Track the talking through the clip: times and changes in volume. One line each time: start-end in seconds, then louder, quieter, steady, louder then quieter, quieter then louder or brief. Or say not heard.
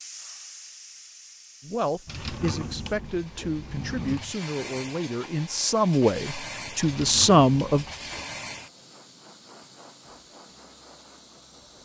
1.6-7.8 louder.